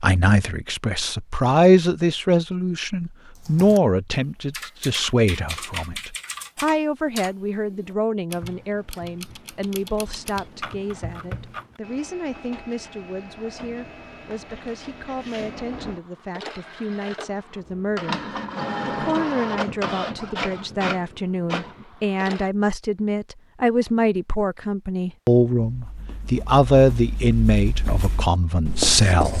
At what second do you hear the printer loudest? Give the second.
19 s.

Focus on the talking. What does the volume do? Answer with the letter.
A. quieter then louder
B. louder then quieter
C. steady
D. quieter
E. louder
A.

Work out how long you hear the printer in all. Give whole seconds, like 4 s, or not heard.
11 s.